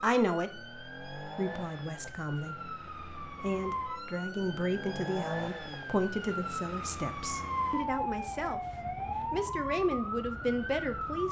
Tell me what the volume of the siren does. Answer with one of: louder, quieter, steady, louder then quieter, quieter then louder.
louder.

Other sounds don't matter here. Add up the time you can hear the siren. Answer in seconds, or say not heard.
11 s.